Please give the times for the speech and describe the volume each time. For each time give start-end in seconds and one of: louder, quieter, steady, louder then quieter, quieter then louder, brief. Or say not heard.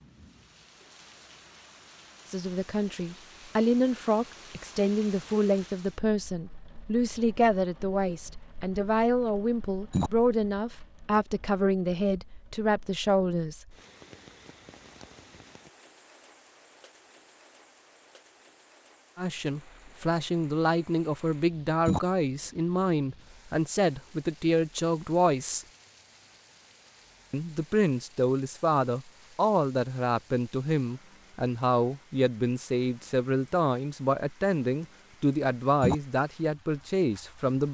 2.3-13.8 steady
19.1-25.6 steady
27.3-37.6 steady.